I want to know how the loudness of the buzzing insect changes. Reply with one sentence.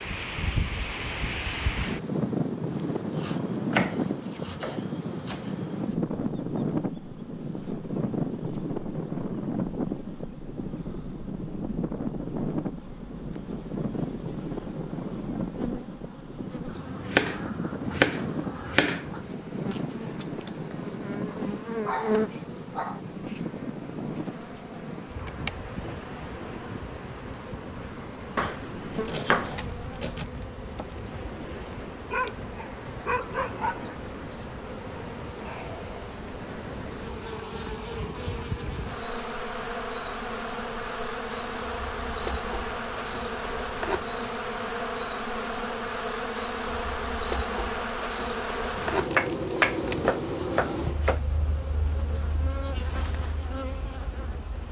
The volume of the buzzing insect goes up.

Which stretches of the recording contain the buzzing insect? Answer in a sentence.
The buzzing insect can be heard from 0.0 to 54.6 s.